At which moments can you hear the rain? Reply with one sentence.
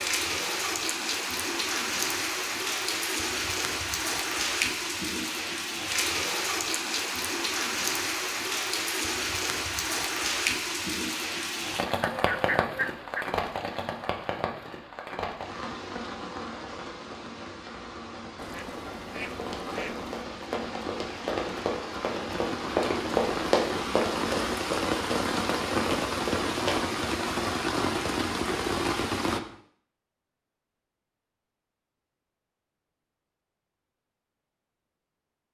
The rain can be heard from 0.0 to 29.4 s.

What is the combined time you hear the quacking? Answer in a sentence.
You can hear the quacking for 3 seconds altogether.